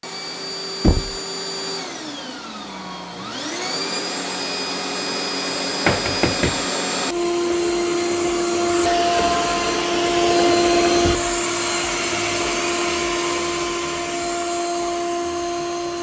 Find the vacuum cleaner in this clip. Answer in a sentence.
The vacuum cleaner can be heard from 0.0 to 15.9 s.